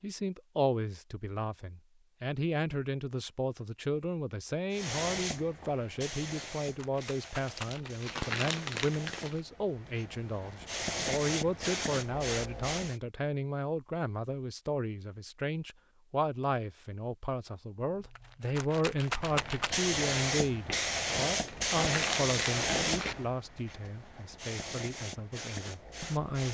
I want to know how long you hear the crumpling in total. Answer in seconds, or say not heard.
4 s.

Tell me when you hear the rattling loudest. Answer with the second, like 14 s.
19 s.